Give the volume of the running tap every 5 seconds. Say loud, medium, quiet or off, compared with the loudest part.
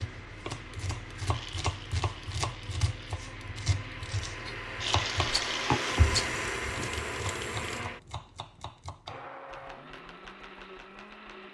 medium, loud, off.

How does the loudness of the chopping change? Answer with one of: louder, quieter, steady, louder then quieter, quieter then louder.
quieter.